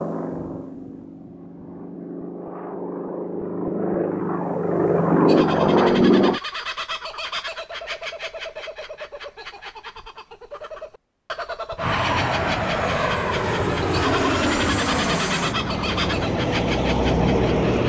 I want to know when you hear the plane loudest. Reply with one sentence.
The loudest moment of the plane is at 6 seconds.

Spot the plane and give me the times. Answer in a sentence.
You can hear the plane from 0.0 to 6.4 s and from 11.8 to 17.8 s.